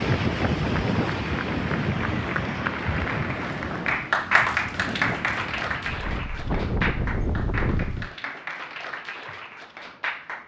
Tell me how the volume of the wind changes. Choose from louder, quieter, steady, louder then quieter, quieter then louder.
quieter then louder.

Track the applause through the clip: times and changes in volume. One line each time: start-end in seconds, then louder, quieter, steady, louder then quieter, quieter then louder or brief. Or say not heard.
0.0-10.4 louder then quieter.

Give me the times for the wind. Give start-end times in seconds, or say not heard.
0.0-8.2.